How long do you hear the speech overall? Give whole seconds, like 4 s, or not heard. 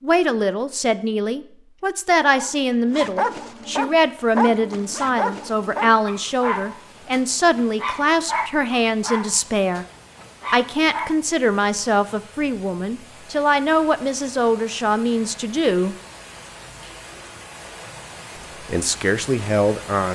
17 s.